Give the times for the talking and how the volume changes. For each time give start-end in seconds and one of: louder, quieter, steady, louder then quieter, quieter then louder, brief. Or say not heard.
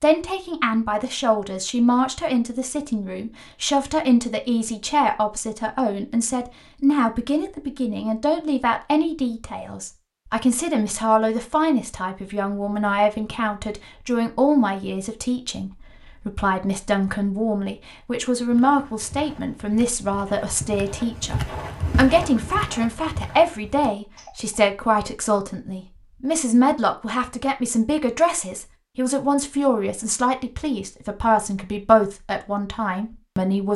0.0-33.7 steady.